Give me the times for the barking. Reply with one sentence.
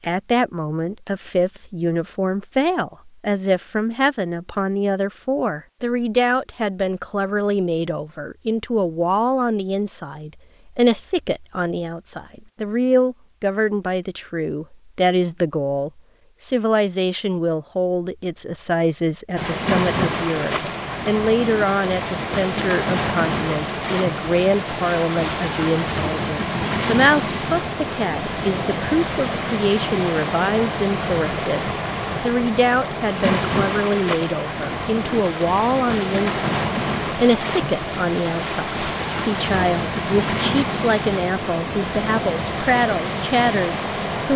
The barking can't be heard in this clip.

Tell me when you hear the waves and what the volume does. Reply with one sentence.
You can hear the waves from 19.4 to 44.3 s, at a steady volume.